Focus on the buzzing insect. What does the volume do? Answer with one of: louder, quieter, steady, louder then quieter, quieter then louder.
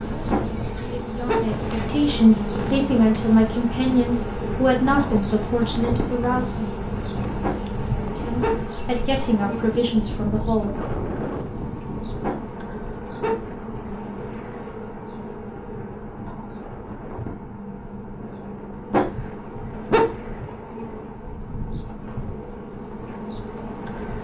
quieter.